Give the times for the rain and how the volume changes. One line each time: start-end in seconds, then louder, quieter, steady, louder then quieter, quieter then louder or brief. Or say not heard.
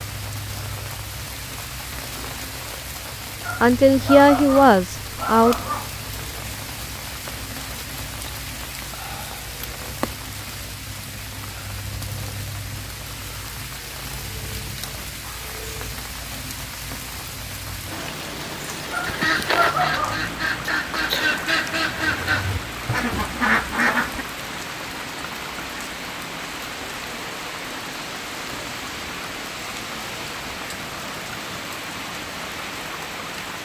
0.0-33.6 steady.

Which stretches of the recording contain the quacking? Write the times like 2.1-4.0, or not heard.
19.1-24.2.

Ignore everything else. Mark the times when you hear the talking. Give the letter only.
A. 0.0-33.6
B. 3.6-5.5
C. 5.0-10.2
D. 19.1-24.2
B.